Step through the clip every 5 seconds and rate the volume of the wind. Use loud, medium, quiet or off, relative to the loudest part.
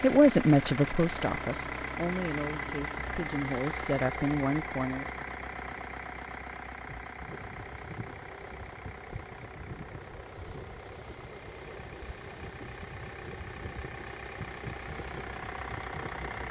off, loud, loud, loud.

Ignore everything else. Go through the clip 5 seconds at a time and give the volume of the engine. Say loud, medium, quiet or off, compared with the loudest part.
loud, medium, medium, loud.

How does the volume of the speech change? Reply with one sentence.
The loudness of the speech goes down, then up.